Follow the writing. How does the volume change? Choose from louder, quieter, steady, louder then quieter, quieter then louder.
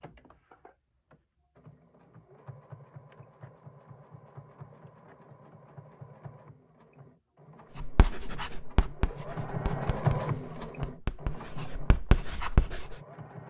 quieter then louder.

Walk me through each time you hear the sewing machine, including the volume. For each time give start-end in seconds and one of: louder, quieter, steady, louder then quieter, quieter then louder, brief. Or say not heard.
0.0-13.4 louder then quieter.